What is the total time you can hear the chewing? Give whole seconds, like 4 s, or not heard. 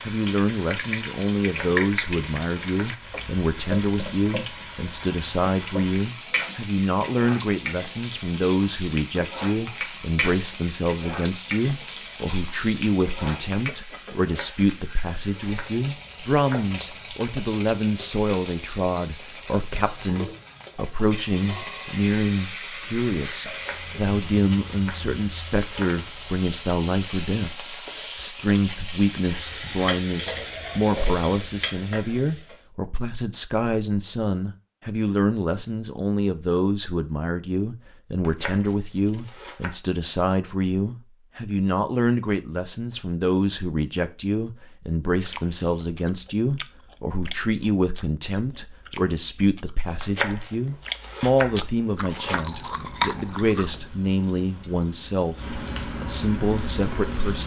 9 s.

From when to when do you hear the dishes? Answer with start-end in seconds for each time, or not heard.
not heard.